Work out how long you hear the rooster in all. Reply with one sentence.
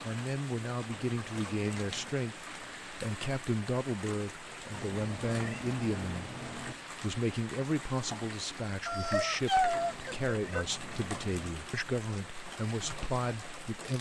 The rooster can be heard for 2 seconds in total.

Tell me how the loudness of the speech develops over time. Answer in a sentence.
The volume of the speech stays about the same.